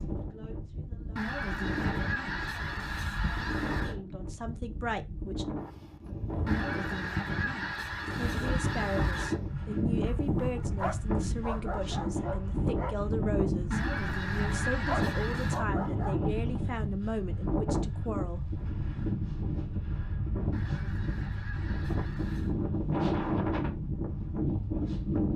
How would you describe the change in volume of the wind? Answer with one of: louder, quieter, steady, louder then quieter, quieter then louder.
louder.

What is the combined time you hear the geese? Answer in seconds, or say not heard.
10 s.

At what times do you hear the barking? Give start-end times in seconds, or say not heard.
9.7-16.2.